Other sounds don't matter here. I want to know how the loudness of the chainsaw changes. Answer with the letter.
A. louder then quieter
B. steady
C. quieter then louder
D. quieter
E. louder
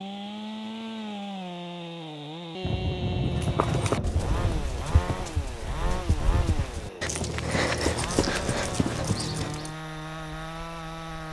B.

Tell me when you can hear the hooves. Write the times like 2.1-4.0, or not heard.
3.3-9.8.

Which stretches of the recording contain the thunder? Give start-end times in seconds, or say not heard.
2.6-4.7.